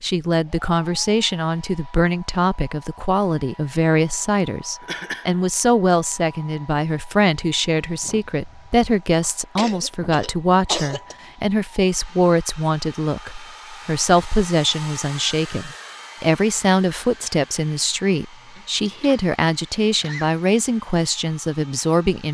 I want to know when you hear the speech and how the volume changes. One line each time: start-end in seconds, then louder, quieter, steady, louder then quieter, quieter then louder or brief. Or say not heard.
0.0-22.2 steady.